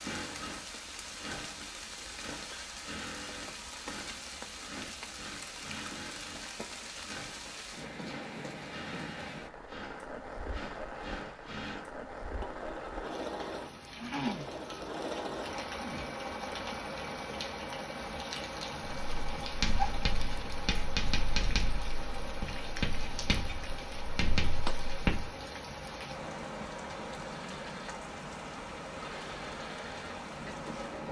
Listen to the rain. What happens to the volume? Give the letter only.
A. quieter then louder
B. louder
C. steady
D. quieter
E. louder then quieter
C.